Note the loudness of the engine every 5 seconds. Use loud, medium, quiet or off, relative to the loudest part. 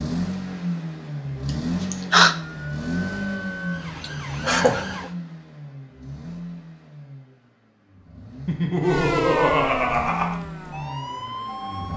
loud, medium, medium.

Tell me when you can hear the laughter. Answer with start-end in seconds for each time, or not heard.
1.4-2.4, 4.0-5.0, 8.4-10.4.